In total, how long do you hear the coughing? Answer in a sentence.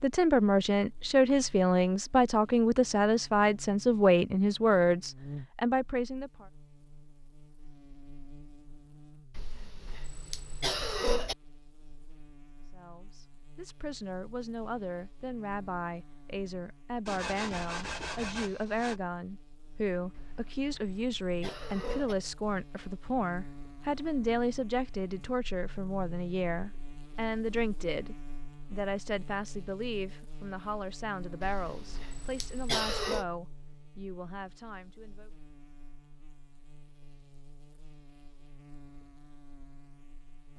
You can hear the coughing for 6 seconds altogether.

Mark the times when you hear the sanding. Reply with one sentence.
The sanding can be heard from 17.1 to 19.0 s.